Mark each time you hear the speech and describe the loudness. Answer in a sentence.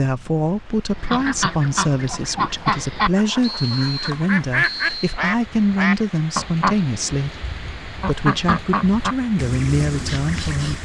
You can hear the speech from 0.0 to 10.8 s, at a steady volume.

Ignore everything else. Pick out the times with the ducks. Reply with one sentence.
The ducks can be heard from 0.9 to 10.8 s.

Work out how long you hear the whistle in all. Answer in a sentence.
The whistle can be heard for 2 seconds in total.